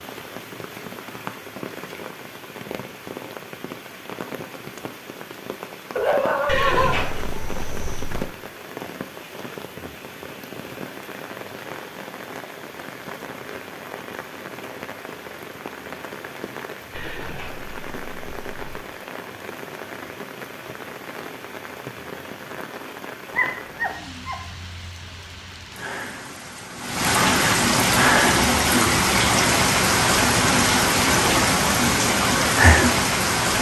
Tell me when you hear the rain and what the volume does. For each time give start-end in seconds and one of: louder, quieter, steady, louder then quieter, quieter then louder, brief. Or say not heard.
0.0-33.5 louder.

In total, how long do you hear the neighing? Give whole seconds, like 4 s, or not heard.
4 s.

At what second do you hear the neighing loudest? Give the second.
7 s.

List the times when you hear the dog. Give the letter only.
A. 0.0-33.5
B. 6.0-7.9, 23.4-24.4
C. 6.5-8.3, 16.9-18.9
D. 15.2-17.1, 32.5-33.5
B.